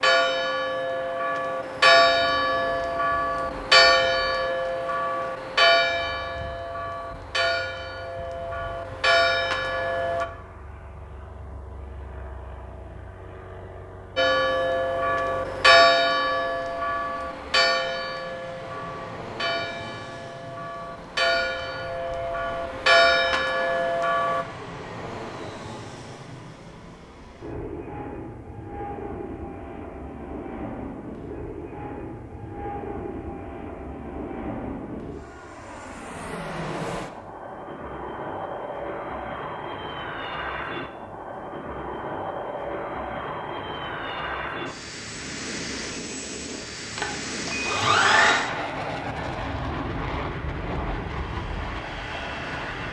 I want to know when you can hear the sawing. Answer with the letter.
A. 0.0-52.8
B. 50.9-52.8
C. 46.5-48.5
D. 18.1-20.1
C.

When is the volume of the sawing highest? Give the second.
48 s.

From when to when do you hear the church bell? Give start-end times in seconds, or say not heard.
0.0-10.2, 14.2-24.4.